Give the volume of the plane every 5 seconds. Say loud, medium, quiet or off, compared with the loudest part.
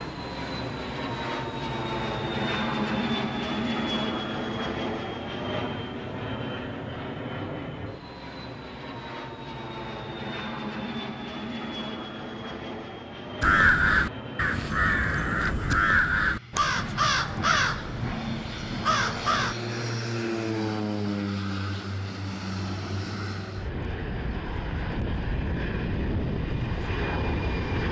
loud, medium, medium, medium, loud, loud.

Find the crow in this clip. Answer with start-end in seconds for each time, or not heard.
13.4-19.6.